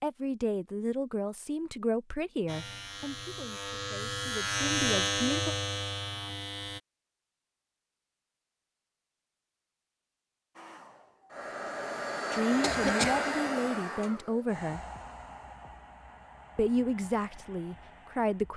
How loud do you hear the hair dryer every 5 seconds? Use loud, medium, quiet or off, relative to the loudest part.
off, off, loud, quiet.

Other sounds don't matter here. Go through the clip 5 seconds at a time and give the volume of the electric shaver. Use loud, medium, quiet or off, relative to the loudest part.
loud, loud, off, off.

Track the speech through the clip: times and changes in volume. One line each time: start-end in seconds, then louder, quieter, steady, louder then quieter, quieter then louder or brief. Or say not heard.
0.0-5.5 quieter then louder
12.3-14.8 brief
16.6-18.5 brief.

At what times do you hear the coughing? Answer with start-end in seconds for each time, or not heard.
12.6-13.3.